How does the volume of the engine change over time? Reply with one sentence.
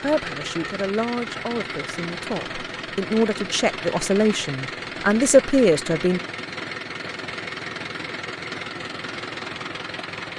The loudness of the engine stays about the same.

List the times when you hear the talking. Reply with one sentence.
You can hear the talking from 0.0 to 6.2 s.